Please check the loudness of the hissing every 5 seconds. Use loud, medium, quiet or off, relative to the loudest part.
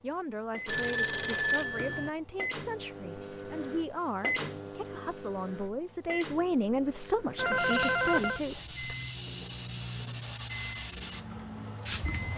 off, loud, loud.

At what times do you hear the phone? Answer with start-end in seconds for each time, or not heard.
0.7-2.1, 7.3-8.4.